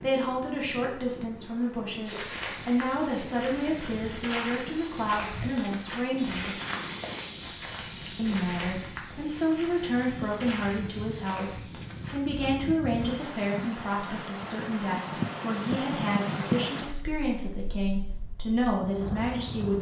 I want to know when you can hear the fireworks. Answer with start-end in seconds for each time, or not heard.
not heard.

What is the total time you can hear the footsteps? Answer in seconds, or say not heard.
11 s.